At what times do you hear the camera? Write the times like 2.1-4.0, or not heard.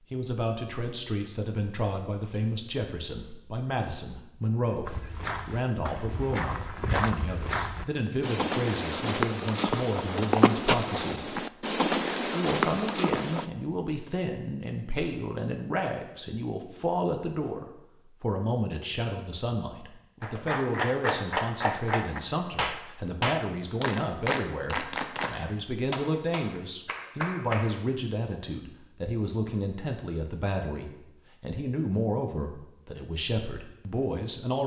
not heard.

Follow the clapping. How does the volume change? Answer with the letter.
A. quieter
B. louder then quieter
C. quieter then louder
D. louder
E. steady
A.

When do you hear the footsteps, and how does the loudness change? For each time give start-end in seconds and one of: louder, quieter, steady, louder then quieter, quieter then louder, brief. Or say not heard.
4.8-13.5 louder.